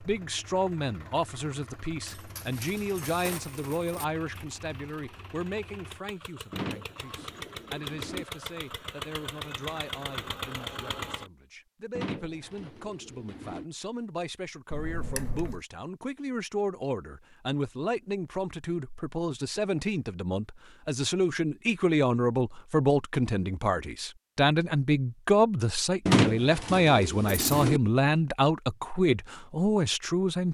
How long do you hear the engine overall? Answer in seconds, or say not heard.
11 s.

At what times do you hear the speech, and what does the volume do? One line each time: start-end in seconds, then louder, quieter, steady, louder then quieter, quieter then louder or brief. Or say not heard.
0.0-30.4 quieter then louder.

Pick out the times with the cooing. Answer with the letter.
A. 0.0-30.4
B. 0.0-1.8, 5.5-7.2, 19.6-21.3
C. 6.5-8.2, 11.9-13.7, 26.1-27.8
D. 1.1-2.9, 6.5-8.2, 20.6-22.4
C.